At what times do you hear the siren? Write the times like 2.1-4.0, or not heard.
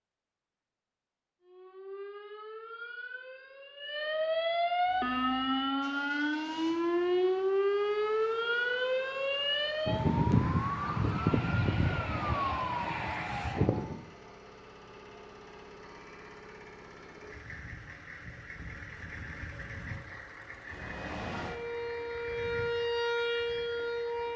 1.4-14.1, 20.6-24.3.